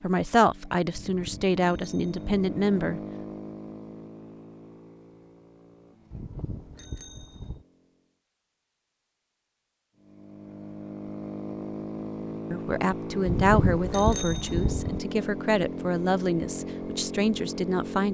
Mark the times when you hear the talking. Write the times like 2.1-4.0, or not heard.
0.0-3.0, 12.5-18.1.